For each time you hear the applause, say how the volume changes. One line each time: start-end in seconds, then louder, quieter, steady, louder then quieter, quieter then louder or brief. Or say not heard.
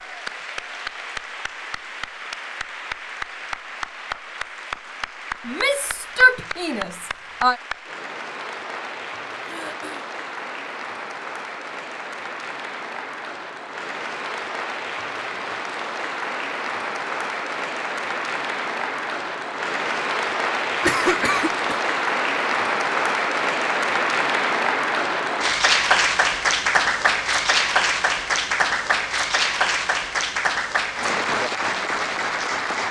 0.0-32.8 louder.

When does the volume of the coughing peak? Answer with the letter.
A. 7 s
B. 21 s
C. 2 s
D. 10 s
B.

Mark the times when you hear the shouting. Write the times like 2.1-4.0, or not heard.
5.5-7.5.